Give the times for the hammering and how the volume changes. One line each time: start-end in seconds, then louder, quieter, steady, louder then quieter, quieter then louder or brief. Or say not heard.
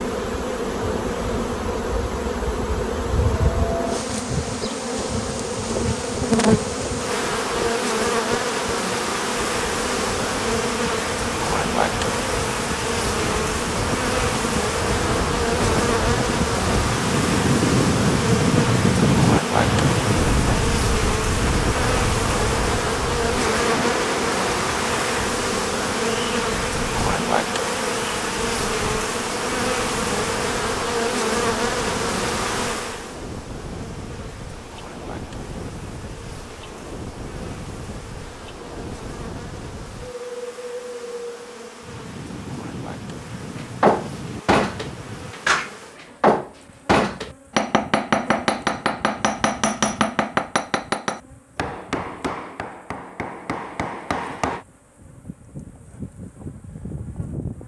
43.5-54.6 quieter.